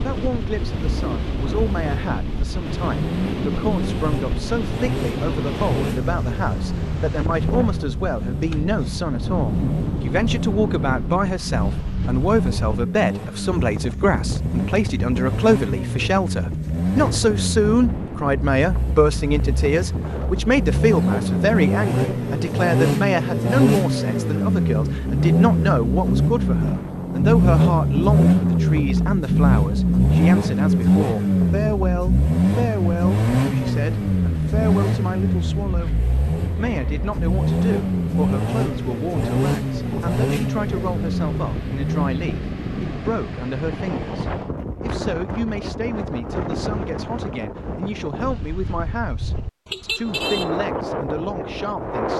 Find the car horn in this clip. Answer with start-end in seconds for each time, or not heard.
49.6-50.5.